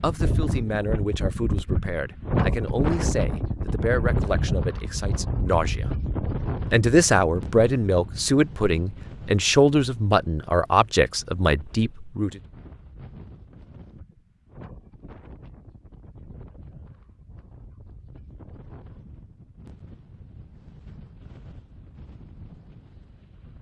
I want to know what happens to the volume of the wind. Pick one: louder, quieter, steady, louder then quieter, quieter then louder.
quieter.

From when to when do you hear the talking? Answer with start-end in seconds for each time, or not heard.
0.0-5.9, 6.7-12.4.